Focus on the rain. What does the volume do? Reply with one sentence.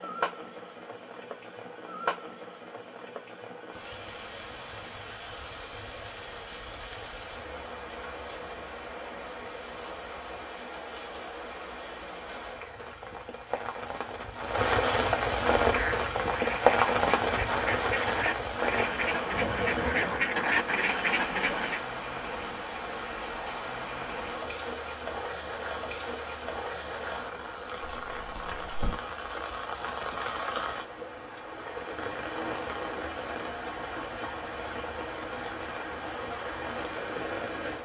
The volume of the rain goes up, then down.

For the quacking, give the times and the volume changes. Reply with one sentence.
The quacking can be heard from 15.6 to 21.9 s, getting louder.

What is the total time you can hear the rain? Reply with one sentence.
You can hear the rain for 38 seconds altogether.